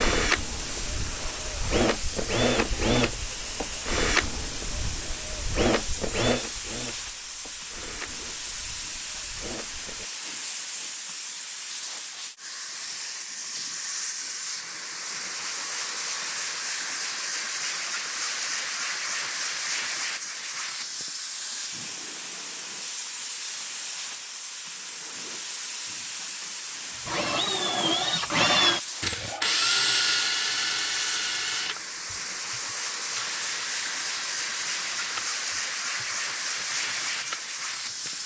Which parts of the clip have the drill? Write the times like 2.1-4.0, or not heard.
0.0-10.1, 27.1-38.2.